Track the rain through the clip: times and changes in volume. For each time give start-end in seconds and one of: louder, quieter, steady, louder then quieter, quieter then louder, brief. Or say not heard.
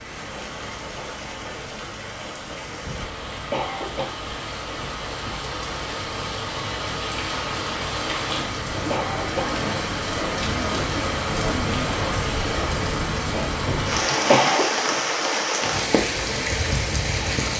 0.0-17.5 louder.